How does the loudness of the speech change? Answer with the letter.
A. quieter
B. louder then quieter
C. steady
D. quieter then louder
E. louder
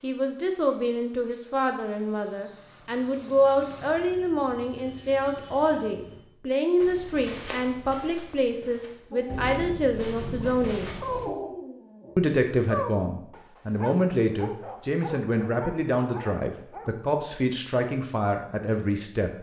C.